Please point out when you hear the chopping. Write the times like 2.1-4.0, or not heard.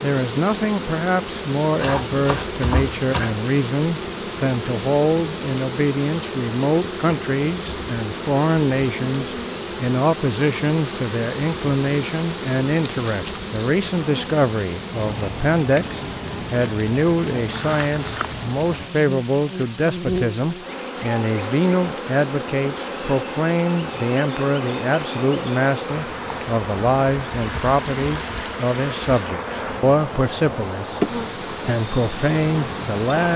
1.8-3.4.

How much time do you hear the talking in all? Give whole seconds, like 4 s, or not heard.
33 s.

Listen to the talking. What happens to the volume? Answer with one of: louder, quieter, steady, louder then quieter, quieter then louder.
steady.